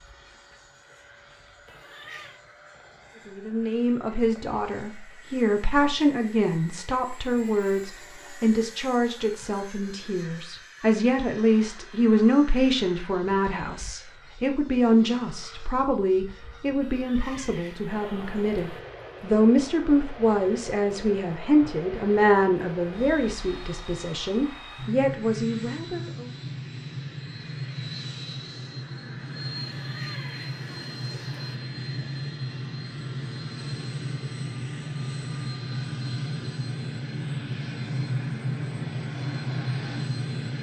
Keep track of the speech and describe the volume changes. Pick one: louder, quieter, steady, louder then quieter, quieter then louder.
steady.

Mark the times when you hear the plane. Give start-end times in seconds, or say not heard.
0.0-40.5.